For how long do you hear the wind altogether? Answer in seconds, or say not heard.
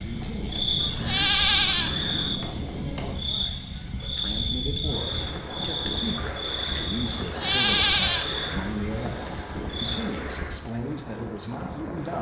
12 s.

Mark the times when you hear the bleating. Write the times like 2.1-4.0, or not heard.
0.8-2.4, 7.1-8.7.